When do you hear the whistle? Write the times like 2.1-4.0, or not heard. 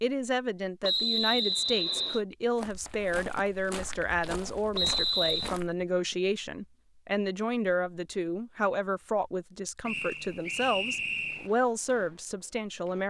0.8-2.2, 4.8-5.5, 9.8-11.5.